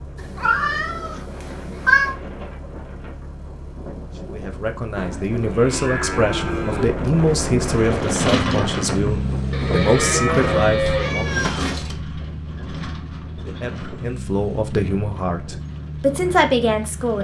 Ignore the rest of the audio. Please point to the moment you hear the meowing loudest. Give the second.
2 s.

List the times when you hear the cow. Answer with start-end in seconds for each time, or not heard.
5.0-7.0, 9.5-11.2.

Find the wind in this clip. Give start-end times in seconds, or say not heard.
0.0-17.2.